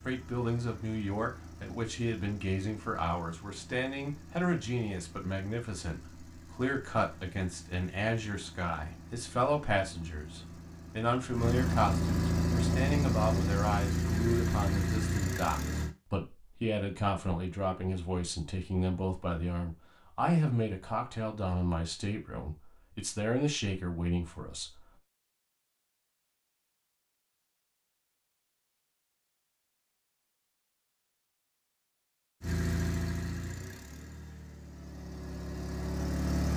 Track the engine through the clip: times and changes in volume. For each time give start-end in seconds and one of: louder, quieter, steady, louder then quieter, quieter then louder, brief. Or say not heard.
0.0-15.9 louder
32.4-36.5 quieter then louder.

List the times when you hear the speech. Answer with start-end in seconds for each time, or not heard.
0.1-24.8.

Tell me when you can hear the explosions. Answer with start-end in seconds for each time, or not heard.
not heard.